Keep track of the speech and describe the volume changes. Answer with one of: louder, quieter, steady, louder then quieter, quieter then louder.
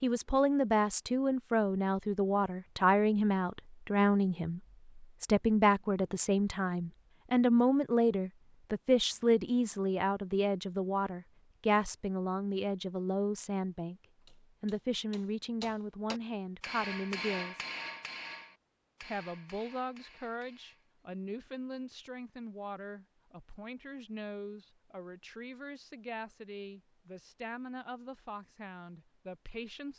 quieter.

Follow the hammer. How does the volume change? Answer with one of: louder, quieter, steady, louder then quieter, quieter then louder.
louder then quieter.